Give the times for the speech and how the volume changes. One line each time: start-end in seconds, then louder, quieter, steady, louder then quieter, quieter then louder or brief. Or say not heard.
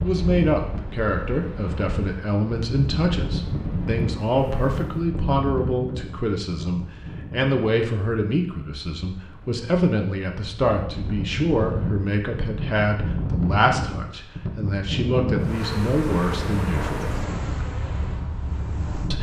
0.0-17.1 steady.